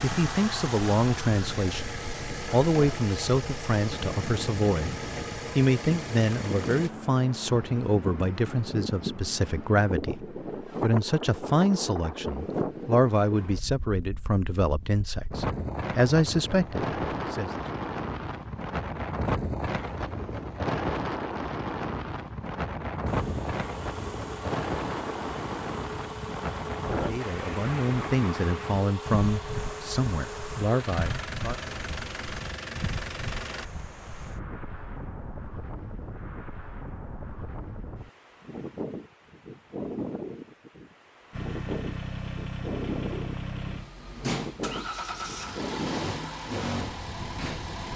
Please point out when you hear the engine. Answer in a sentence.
The engine can be heard from 0.0 to 6.9 s, from 23.1 to 33.6 s and from 41.3 to 47.9 s.